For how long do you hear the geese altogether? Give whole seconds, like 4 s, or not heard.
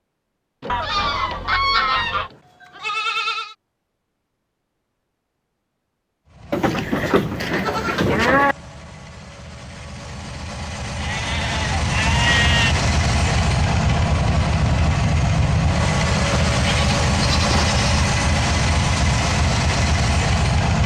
2 s.